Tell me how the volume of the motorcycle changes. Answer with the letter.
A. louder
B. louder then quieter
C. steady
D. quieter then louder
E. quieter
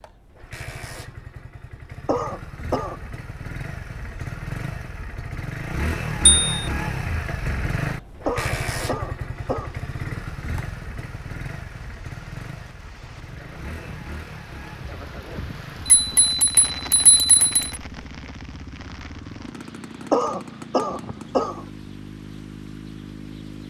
B.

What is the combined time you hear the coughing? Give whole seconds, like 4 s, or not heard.
4 s.